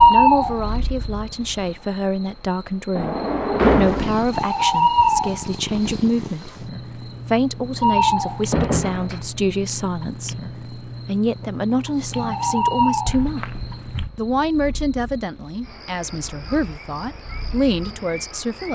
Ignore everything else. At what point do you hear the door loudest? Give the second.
4 s.